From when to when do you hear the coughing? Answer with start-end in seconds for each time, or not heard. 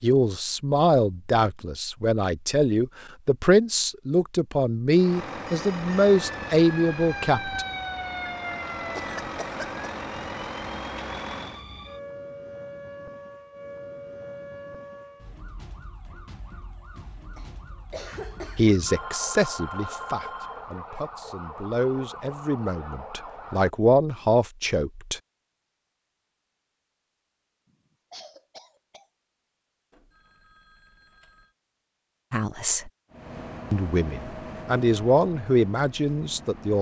8.9-9.8, 17.4-18.6, 27.6-29.1.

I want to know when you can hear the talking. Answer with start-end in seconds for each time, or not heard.
0.0-7.7, 18.6-25.2, 32.3-32.9, 33.7-36.7.